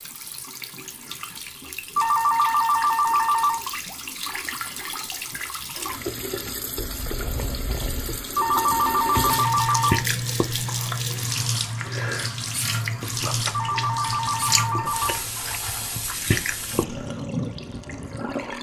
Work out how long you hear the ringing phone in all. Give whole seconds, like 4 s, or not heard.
5 s.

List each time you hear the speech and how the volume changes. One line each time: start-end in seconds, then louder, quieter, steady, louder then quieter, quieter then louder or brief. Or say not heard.
not heard.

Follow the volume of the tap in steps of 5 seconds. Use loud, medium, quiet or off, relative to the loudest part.
medium, loud, loud, loud.